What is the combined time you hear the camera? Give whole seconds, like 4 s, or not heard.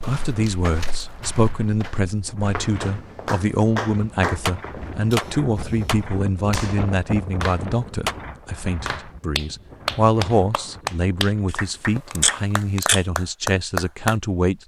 3 s.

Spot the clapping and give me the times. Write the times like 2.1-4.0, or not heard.
2.8-14.2.